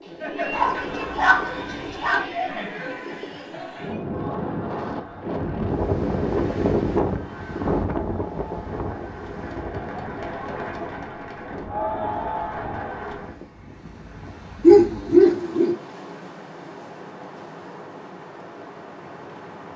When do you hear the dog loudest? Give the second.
15 s.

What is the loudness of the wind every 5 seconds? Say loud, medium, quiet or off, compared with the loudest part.
medium, loud, quiet, quiet.